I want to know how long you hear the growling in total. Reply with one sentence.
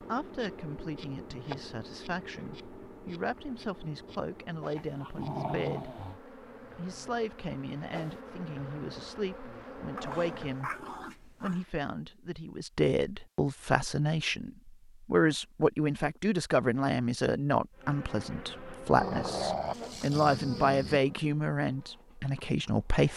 The growling can be heard for 5 seconds in total.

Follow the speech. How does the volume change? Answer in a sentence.
The volume of the speech goes up.